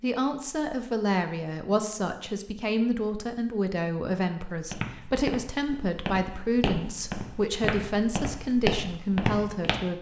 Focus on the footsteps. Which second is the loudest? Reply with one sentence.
The volume of the footsteps peaks at 9 seconds.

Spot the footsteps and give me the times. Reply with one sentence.
The footsteps can be heard from 4.5 to 9.8 s.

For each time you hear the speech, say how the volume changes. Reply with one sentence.
The speech can be heard from 0.0 to 9.9 s, at a steady volume.